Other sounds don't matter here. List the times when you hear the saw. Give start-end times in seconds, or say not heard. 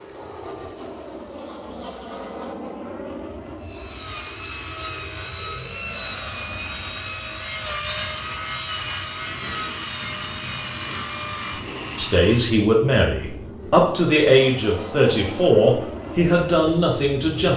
3.6-12.7.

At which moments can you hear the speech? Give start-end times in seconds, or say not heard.
11.9-17.5.